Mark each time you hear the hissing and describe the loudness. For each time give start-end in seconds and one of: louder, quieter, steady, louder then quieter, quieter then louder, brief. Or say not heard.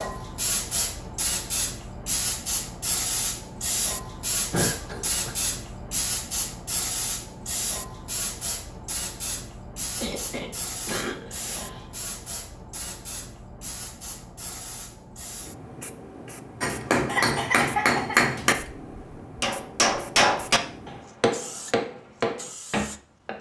0.0-23.3 quieter.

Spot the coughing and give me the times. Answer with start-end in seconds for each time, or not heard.
4.5-5.3, 10.0-12.0, 17.1-18.2.